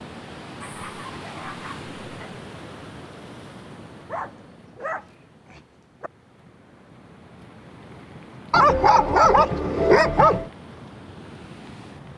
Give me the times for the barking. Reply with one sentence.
The barking can be heard from 0.6 to 2.4 s, from 4.1 to 6.1 s and from 8.5 to 10.5 s.